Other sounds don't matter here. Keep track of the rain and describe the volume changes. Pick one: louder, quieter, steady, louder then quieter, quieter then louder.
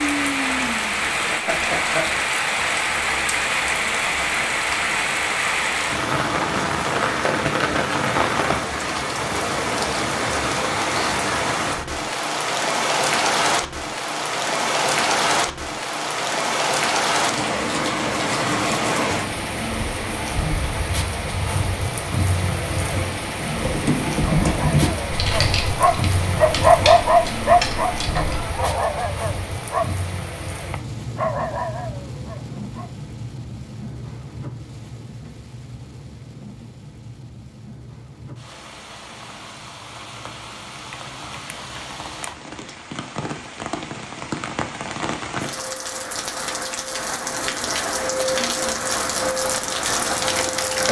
quieter then louder.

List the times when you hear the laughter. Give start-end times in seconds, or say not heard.
1.4-2.0.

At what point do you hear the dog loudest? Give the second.
27 s.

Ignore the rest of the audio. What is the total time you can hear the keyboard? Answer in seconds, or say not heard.
5 s.